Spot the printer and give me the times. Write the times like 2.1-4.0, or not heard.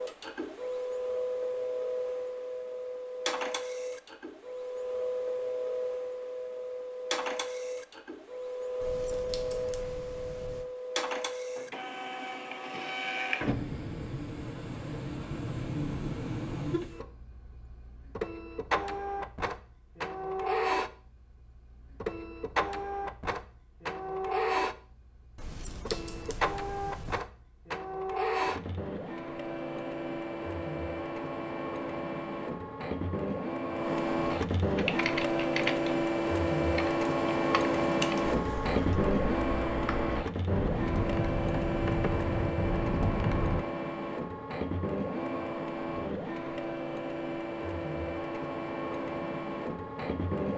0.0-50.5.